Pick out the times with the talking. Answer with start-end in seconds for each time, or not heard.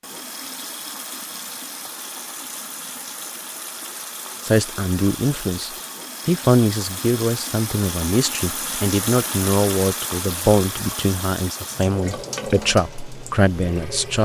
4.4-14.1.